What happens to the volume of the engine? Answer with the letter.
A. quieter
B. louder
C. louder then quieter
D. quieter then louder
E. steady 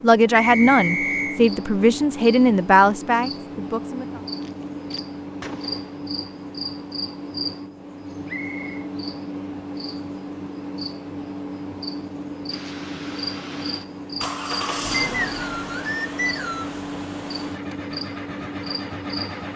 C.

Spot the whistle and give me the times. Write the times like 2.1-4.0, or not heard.
0.3-1.4, 8.2-8.7, 15.0-16.8.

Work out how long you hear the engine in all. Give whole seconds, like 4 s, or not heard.
7 s.